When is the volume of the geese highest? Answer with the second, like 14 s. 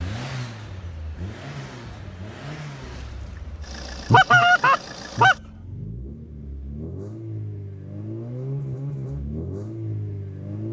4 s.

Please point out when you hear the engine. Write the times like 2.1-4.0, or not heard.
0.0-10.6.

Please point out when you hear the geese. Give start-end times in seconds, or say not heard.
2.8-5.3.